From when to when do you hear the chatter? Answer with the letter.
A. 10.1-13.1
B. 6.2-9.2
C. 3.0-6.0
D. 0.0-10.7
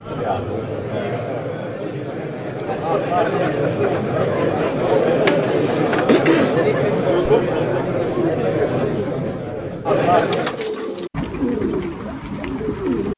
D.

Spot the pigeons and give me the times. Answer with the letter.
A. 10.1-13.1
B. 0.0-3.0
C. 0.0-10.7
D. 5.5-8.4
A.